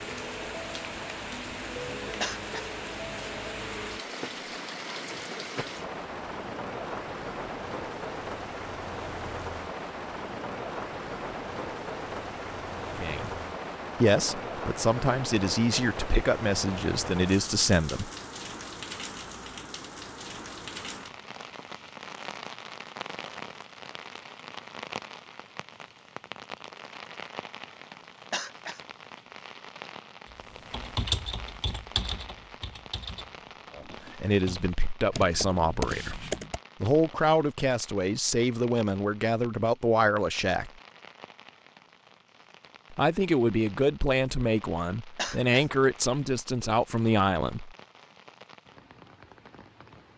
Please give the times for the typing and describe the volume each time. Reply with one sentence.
You can hear the typing from 30.5 to 36.6 s, getting quieter then louder.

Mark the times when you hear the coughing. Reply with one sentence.
You can hear the coughing from 2.2 to 2.6 s, from 28.3 to 28.8 s and from 45.1 to 45.6 s.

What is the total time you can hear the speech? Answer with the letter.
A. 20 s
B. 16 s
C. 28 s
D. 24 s
B.